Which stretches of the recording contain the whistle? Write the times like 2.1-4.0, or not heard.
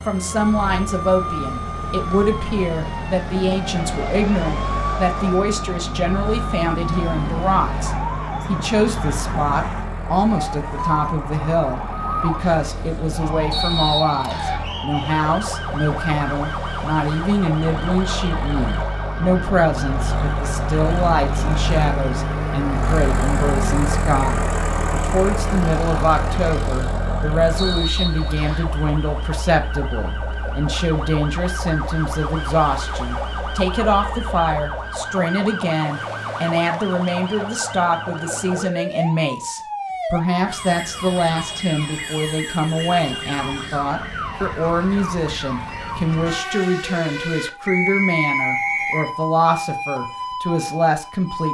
13.5-14.7, 27.6-28.7, 47.6-49.1.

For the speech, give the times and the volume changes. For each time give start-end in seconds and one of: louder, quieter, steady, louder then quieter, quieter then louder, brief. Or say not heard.
0.1-51.4 steady.